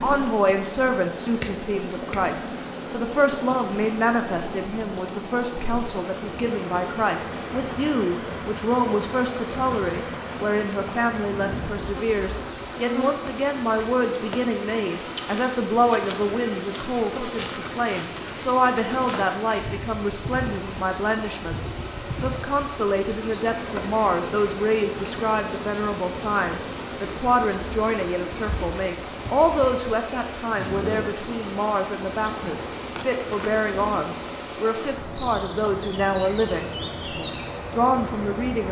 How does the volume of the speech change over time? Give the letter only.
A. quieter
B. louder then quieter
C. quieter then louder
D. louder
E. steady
E.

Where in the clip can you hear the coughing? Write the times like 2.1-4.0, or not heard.
not heard.